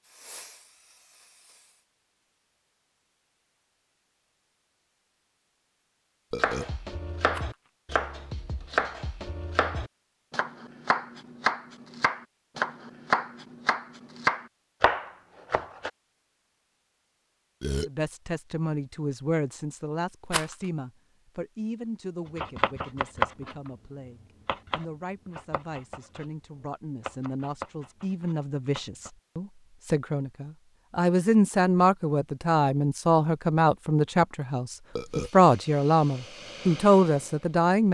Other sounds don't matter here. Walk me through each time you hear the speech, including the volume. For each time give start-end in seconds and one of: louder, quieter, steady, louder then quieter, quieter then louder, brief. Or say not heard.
17.9-37.8 quieter then louder.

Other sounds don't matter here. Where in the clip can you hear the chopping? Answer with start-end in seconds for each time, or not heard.
6.3-15.9, 22.4-29.1.